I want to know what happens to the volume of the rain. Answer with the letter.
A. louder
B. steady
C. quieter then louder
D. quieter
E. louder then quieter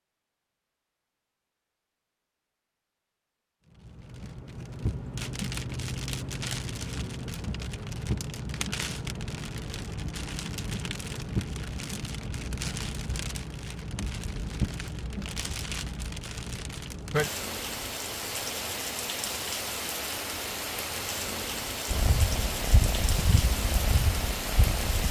B.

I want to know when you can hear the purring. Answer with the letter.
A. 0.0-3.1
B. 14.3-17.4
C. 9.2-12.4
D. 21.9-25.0
D.